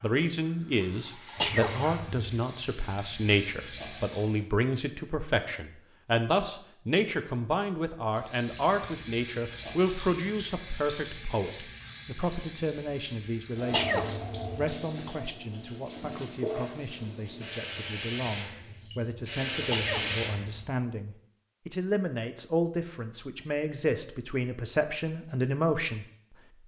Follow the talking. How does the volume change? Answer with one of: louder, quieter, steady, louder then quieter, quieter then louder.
quieter then louder.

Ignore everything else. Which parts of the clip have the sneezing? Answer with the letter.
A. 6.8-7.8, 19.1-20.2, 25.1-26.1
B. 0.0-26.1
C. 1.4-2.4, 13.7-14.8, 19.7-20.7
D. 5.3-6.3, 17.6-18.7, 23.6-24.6
C.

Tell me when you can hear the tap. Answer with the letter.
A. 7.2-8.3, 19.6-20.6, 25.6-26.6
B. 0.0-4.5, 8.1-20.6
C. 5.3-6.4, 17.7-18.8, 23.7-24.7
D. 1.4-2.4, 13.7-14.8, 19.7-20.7
B.